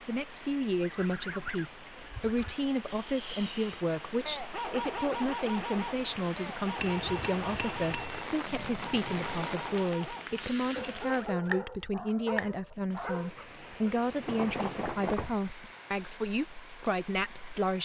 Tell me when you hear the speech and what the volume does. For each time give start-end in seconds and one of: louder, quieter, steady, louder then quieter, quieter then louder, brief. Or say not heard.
0.1-17.8 steady.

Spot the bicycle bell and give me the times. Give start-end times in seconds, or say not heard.
0.3-1.2, 6.8-8.2, 14.2-15.3.